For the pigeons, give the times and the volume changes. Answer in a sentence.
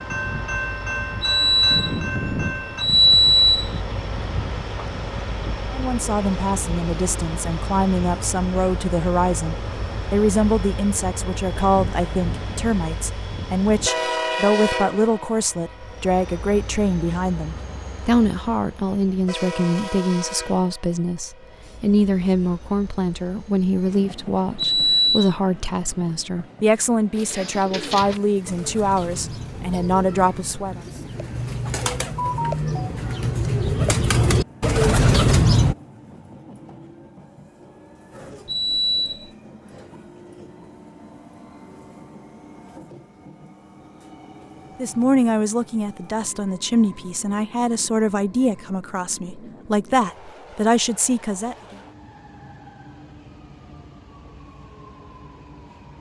You can hear the pigeons from 27.1 to 35.8 s, getting louder.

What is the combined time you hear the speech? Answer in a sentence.
The speech can be heard for 32 seconds in total.